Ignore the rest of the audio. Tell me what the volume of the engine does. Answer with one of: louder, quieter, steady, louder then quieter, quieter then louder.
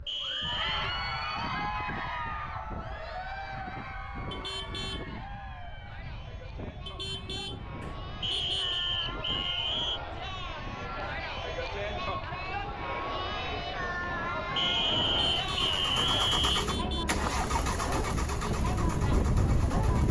quieter.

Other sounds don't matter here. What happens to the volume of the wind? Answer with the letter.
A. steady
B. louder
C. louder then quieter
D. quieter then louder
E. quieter
B.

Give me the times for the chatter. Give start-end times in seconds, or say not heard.
0.1-20.0.